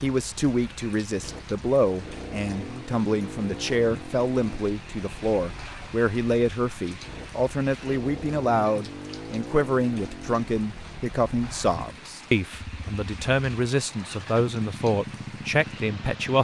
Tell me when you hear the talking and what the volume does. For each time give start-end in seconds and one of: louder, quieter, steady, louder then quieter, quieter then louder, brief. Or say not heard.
0.0-16.3 steady.